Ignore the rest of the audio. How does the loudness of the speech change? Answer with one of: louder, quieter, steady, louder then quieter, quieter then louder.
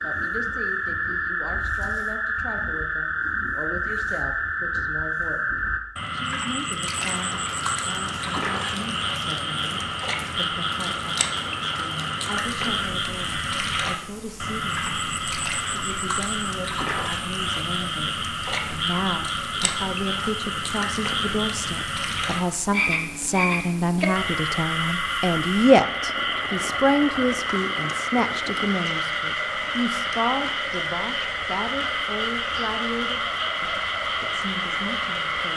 louder then quieter.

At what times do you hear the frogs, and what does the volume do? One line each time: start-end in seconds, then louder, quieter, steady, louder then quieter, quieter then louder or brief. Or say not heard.
0.0-35.5 steady.